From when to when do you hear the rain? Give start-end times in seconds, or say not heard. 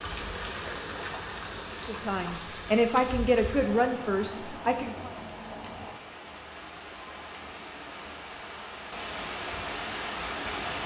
0.0-10.8.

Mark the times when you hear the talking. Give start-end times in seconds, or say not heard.
1.8-5.1.